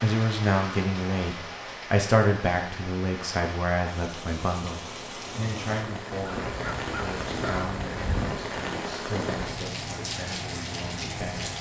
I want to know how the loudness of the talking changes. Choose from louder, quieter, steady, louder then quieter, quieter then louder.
quieter.